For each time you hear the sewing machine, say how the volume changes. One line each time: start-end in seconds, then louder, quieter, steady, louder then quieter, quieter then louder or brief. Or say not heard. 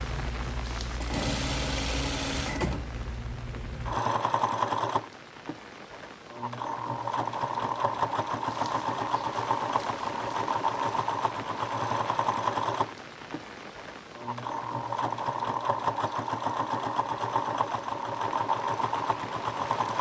0.0-19.9 steady.